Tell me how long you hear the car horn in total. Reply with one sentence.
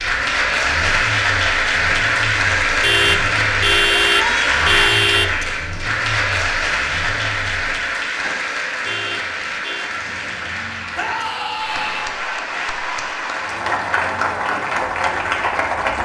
You can hear the car horn for 4 seconds altogether.